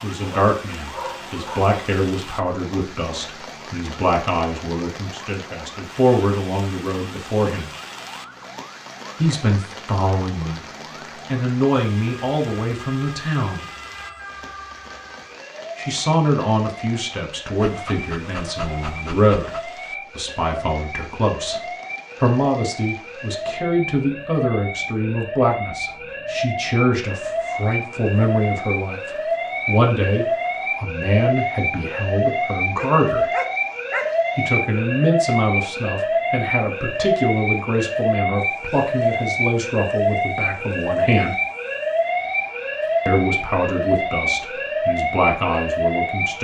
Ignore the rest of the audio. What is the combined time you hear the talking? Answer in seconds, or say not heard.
39 s.